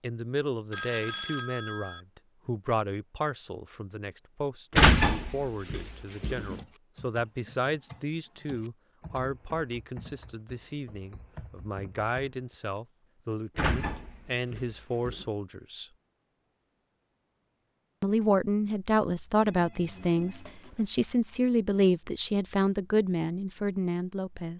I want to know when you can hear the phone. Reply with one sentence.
The phone can be heard from 0.7 to 2.0 s and from 19.4 to 20.9 s.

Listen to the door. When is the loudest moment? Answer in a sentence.
The loudest moment of the door is at 5 seconds.